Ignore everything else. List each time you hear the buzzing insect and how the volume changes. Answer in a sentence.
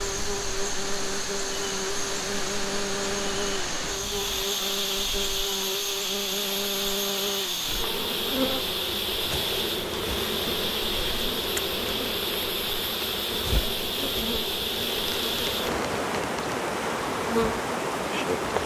You can hear the buzzing insect from 0.0 to 18.6 s, at a steady volume.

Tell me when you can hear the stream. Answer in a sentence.
You can hear the stream from 0.0 to 18.6 s.